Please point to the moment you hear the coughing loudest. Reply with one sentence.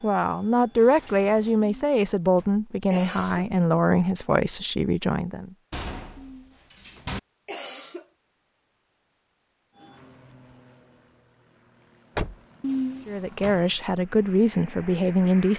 The volume of the coughing peaks at 13 seconds.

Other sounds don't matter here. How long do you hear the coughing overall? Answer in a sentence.
You can hear the coughing for 5 seconds altogether.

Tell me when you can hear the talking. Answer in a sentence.
The talking can be heard from 0.0 to 5.5 s and from 13.1 to 15.5 s.